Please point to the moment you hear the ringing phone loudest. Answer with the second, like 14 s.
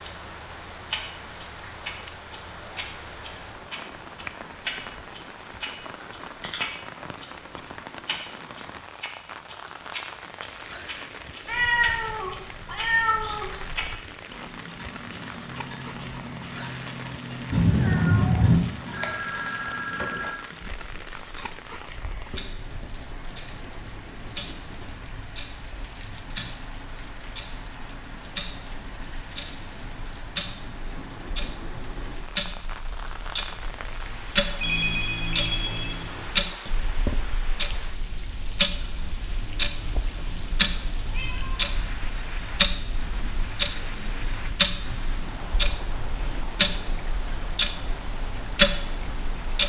35 s.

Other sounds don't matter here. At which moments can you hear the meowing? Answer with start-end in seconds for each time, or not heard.
11.4-13.9, 17.5-18.6, 40.0-41.8.